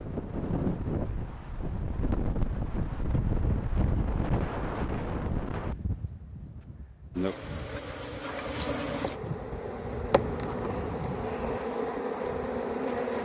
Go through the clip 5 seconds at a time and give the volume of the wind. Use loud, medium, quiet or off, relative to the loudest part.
loud, medium, medium.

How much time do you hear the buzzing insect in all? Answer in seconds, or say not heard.
6 s.